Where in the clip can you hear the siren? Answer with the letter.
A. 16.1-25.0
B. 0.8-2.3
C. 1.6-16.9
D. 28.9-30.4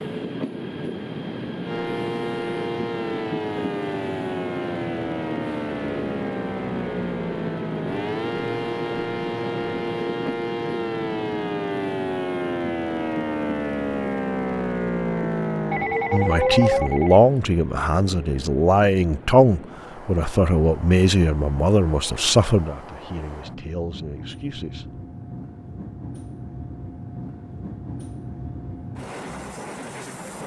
C.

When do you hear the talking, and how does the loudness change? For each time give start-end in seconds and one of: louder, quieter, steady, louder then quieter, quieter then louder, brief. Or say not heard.
16.1-25.0 quieter.